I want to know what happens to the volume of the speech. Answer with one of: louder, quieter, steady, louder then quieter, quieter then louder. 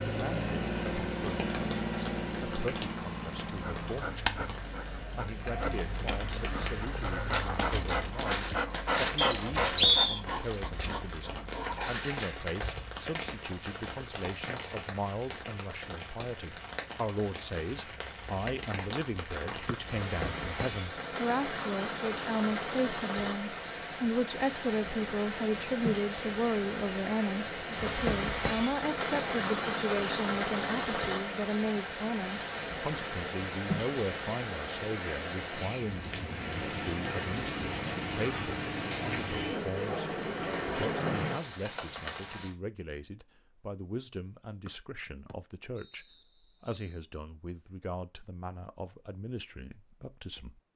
louder then quieter.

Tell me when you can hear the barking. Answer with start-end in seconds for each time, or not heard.
3.5-12.5.